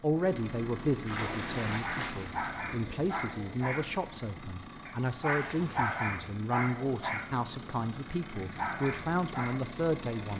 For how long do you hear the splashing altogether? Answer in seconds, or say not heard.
2 s.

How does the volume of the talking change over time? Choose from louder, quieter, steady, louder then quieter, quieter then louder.
steady.